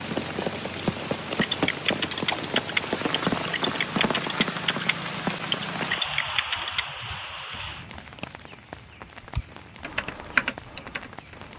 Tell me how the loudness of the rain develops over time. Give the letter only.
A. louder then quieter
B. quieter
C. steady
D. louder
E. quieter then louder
B.